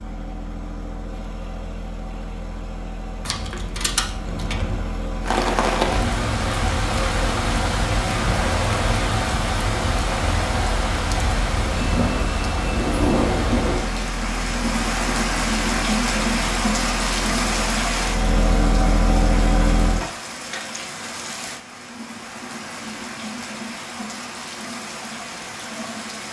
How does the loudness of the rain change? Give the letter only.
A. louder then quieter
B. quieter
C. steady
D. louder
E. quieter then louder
B.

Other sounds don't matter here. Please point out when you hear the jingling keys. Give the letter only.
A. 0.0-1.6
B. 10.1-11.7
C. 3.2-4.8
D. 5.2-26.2
C.